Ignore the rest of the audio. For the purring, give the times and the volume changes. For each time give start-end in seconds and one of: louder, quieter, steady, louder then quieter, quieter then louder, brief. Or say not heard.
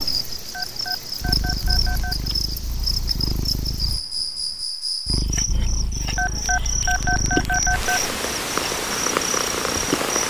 0.0-10.2 louder.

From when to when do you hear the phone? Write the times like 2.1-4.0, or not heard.
0.6-2.3, 6.2-8.1.